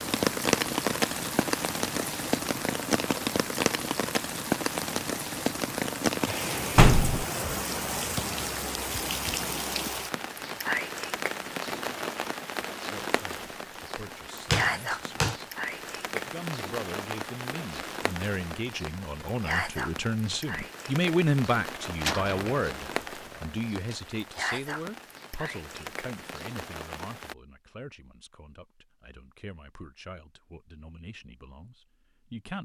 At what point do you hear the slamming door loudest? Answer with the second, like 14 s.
7 s.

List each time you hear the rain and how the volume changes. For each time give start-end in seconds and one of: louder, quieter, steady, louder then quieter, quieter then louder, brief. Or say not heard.
0.0-27.4 quieter.